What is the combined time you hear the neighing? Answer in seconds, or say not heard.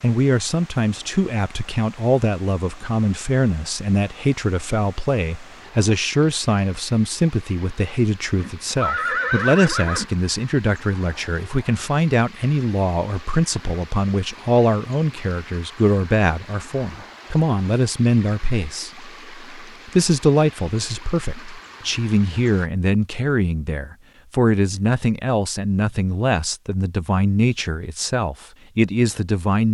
2 s.